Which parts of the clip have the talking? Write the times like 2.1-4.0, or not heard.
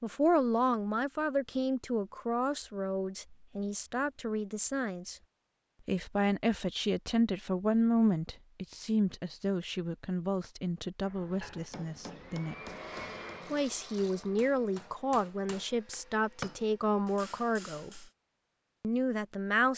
0.0-5.2, 5.8-12.6, 13.5-18.1, 18.8-19.7.